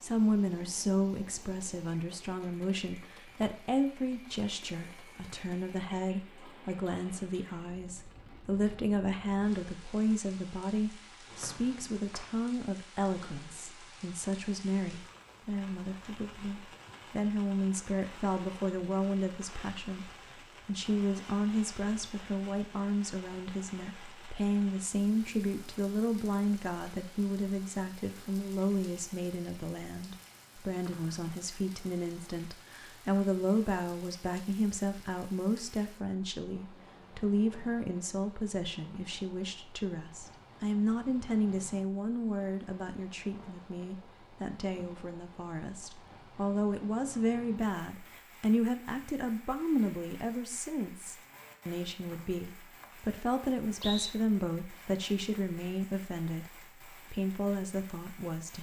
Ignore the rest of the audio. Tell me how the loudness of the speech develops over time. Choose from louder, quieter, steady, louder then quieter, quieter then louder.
steady.